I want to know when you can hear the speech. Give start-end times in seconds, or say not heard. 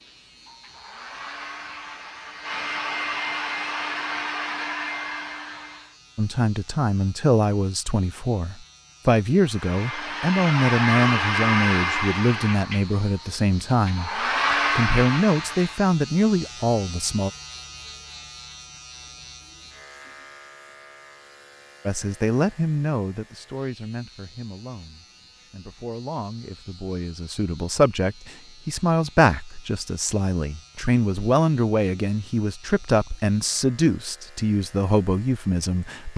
6.2-17.3, 21.9-36.1.